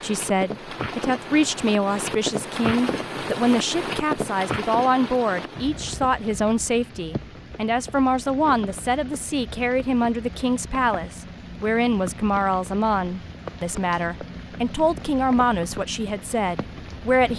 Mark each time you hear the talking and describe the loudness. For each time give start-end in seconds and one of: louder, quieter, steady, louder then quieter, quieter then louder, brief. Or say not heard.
0.0-17.3 steady.